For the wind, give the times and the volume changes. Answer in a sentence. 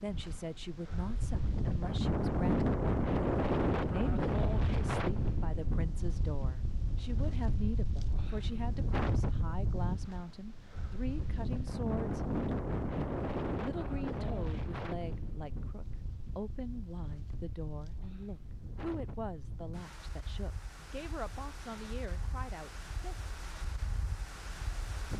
The wind can be heard from 0.0 to 25.1 s, getting quieter.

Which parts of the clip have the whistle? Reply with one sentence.
The whistle can't be heard in this clip.